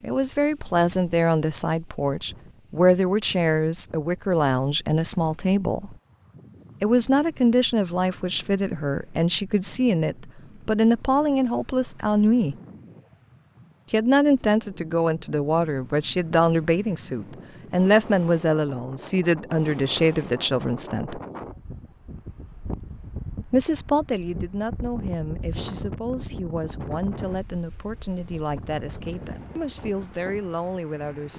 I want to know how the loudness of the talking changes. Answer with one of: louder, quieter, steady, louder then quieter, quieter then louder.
quieter.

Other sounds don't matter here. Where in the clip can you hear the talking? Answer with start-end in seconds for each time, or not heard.
0.0-6.0, 6.8-12.6, 13.9-21.2, 23.5-31.3.